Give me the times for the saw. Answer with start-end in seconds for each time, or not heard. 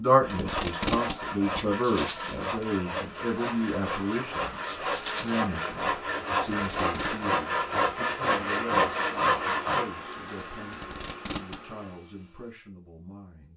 0.2-9.8.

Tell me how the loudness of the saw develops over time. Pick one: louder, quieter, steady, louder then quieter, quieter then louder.
louder.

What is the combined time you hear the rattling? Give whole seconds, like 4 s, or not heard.
2 s.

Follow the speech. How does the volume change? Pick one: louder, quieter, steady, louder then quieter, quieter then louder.
quieter.